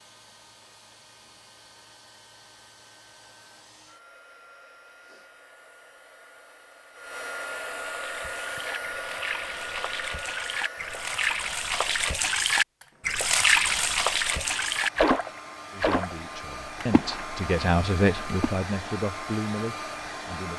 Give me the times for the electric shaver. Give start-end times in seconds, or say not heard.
not heard.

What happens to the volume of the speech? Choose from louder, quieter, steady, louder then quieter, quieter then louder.
louder then quieter.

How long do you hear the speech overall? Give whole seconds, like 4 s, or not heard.
5 s.